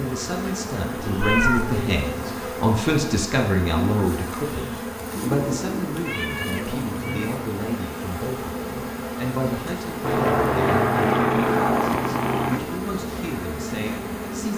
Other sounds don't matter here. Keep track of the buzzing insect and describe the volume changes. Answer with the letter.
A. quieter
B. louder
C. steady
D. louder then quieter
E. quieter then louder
C.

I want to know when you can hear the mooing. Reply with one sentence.
You can't hear the mooing here.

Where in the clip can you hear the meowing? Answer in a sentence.
The meowing can be heard from 1.0 to 1.9 s, from 5.1 to 7.3 s and from 10.0 to 12.6 s.